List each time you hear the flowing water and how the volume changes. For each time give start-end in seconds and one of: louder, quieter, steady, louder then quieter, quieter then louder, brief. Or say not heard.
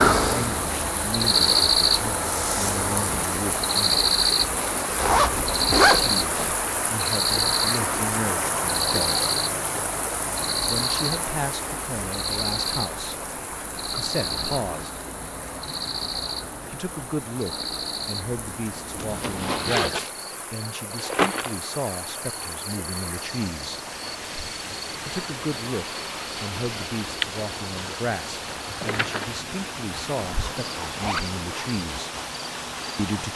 0.2-33.3 quieter then louder.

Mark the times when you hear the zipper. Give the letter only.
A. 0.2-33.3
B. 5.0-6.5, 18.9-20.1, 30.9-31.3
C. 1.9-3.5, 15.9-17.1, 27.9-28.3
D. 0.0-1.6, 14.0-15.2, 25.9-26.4
B.